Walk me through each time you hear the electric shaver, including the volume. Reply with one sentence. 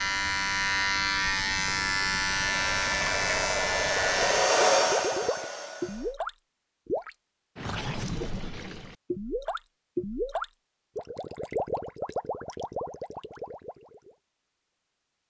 You can hear the electric shaver from 0.0 to 4.5 s, at a steady volume.